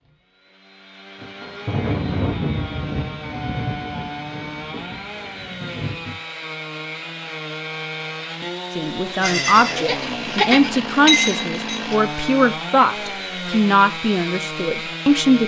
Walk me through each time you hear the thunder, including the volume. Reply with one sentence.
The thunder can be heard from 1.2 to 6.2 s, getting quieter.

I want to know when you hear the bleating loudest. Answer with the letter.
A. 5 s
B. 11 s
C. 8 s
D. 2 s
B.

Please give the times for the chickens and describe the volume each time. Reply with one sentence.
You can't hear the chickens here.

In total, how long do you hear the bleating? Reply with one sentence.
The bleating can be heard for 3 seconds in total.